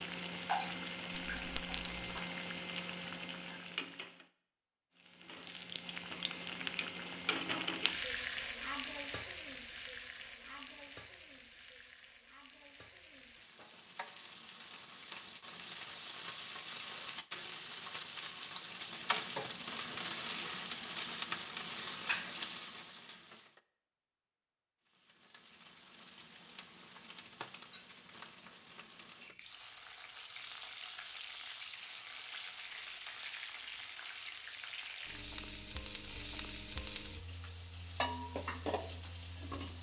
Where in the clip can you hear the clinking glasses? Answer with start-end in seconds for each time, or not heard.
1.1-2.1.